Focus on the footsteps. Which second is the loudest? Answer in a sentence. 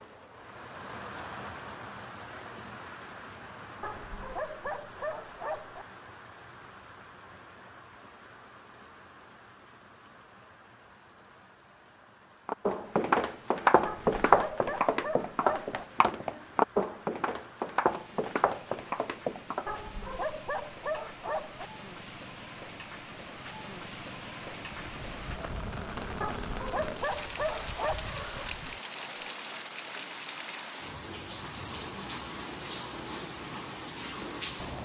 The volume of the footsteps peaks at 14 seconds.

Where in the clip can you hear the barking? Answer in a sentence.
You can hear the barking from 3.8 to 5.8 s, from 13.8 to 15.8 s, from 19.6 to 21.7 s and from 26.2 to 28.1 s.